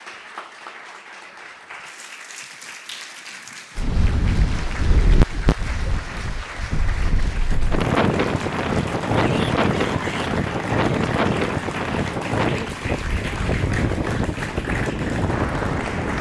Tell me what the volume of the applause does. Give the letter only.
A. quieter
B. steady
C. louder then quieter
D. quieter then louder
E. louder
E.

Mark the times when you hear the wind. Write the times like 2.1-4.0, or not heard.
3.8-16.1.